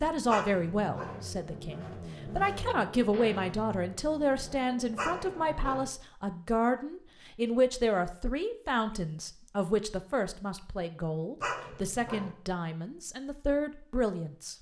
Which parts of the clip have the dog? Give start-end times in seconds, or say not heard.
0.2-1.2, 5.0-5.9, 11.4-12.3.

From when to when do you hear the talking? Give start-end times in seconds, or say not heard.
0.0-14.5.